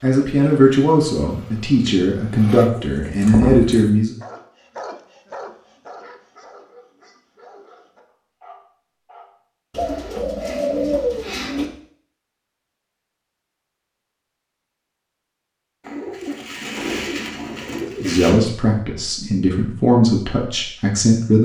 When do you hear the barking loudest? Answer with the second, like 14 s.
5 s.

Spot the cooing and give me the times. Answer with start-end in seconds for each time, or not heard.
2.6-3.9, 9.7-11.7, 15.8-18.4.